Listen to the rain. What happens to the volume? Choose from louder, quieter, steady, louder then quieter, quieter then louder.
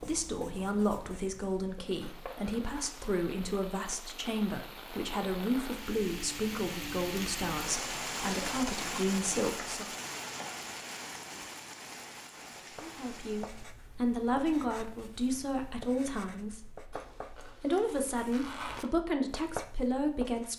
louder then quieter.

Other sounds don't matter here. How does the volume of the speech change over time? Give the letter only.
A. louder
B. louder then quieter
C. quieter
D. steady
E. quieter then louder
D.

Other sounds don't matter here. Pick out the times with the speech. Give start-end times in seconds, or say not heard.
0.0-9.8, 12.8-20.5.